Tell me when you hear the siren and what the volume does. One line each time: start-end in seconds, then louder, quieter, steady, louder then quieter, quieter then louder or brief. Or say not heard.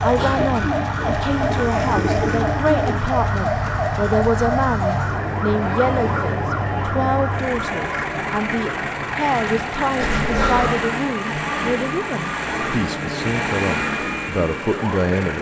0.0-15.3 quieter.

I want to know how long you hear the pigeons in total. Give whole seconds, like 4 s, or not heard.
2 s.